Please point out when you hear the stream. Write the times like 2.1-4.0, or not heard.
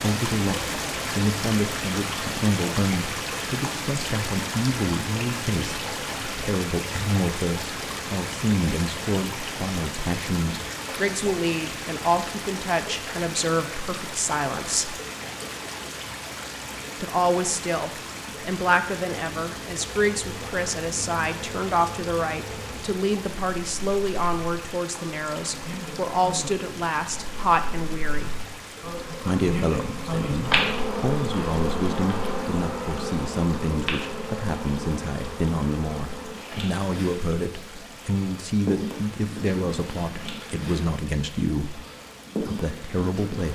0.0-43.5.